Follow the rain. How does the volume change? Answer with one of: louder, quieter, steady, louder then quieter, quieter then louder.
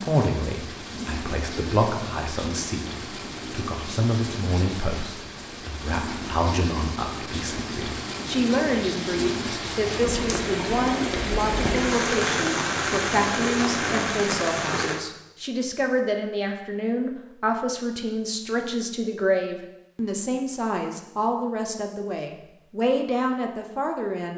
louder.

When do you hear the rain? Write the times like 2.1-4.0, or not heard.
0.0-15.0.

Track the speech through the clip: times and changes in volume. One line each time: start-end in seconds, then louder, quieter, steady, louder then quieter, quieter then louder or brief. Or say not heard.
0.0-24.3 steady.